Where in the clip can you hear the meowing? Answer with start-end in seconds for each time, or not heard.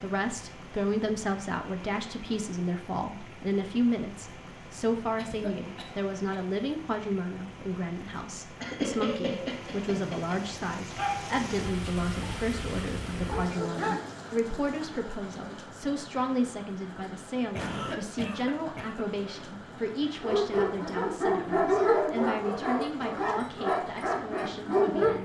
not heard.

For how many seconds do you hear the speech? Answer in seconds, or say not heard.
25 s.